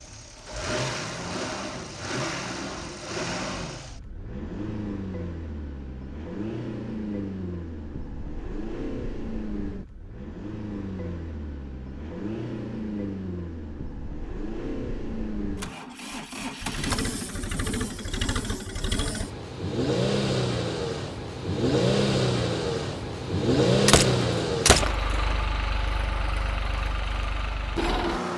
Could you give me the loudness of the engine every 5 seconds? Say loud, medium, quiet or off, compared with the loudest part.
medium, medium, medium, medium, loud, medium.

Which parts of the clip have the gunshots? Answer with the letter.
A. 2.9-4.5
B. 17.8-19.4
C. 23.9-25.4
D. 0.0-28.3
C.